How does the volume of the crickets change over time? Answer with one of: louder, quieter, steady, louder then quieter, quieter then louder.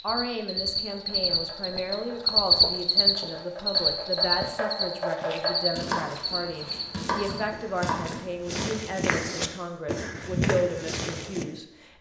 louder then quieter.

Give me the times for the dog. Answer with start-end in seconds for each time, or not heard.
not heard.